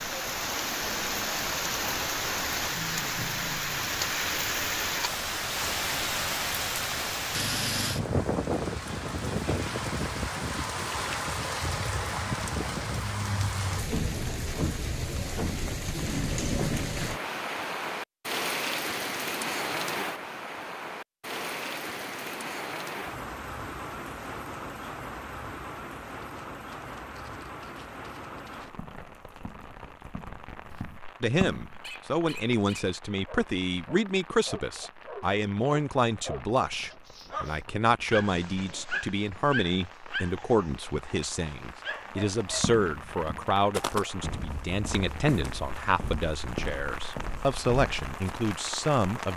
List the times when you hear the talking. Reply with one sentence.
The talking can be heard from 31.2 to 49.3 s.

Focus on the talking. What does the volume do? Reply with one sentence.
The loudness of the talking stays about the same.